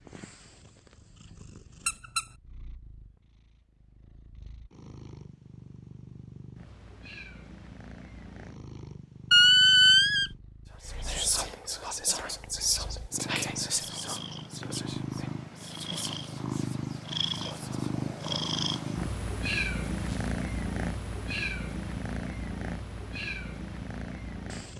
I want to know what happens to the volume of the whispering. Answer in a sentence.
The loudness of the whispering goes down.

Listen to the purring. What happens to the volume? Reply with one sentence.
The loudness of the purring goes up.